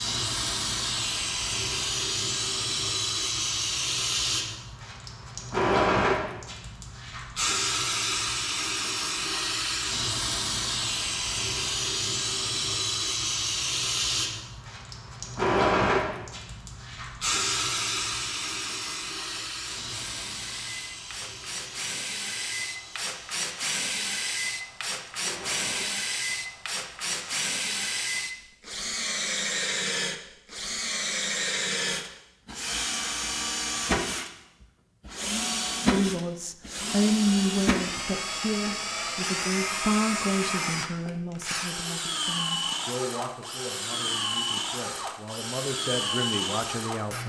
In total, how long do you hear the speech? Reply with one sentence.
You can hear the speech for 11 seconds altogether.